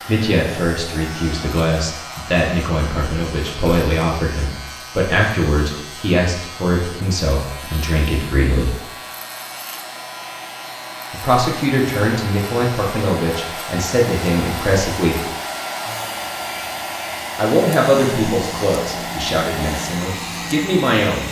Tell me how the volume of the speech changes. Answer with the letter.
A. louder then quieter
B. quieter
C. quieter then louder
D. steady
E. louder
D.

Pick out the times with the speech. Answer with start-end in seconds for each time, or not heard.
0.1-8.8, 11.1-15.2, 17.4-21.2.